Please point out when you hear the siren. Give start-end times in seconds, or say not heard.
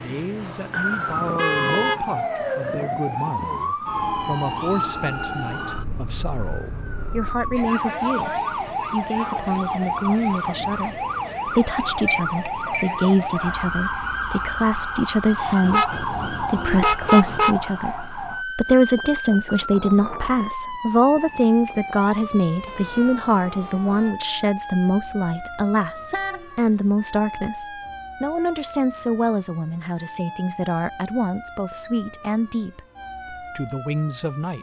0.0-34.5.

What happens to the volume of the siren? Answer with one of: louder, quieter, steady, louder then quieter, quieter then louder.
quieter.